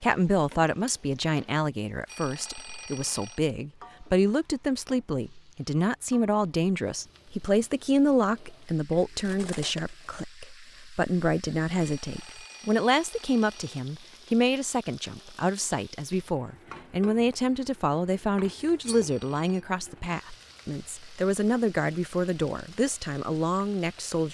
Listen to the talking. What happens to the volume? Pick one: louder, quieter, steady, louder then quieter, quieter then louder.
steady.